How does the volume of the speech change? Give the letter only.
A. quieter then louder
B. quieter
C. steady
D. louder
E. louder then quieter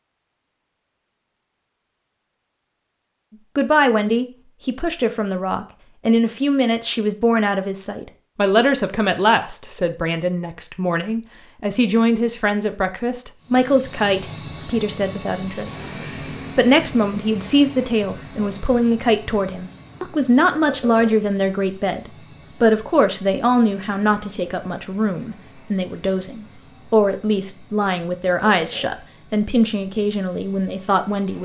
C.